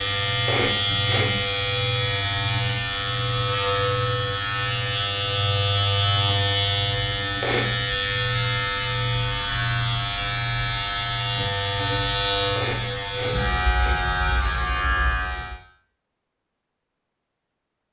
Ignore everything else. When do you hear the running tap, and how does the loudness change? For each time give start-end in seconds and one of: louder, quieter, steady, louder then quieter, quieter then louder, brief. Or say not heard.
not heard.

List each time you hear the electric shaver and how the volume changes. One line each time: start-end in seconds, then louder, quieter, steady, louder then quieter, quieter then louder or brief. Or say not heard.
0.0-15.6 steady.